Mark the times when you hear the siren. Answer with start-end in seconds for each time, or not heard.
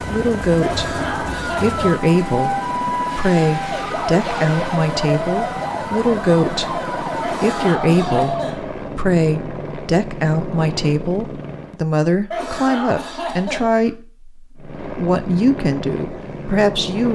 0.0-8.6.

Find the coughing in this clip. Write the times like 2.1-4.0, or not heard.
0.6-2.0, 7.2-8.7, 12.3-13.9.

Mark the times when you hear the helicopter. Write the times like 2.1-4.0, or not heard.
0.0-11.8, 14.6-17.0.